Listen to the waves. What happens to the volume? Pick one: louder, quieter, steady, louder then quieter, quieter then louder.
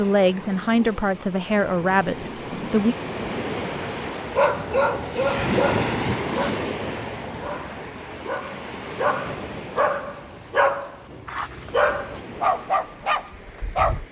louder then quieter.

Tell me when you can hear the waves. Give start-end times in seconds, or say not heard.
0.0-14.0.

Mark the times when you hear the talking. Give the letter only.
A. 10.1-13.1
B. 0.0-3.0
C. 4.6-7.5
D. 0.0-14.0
B.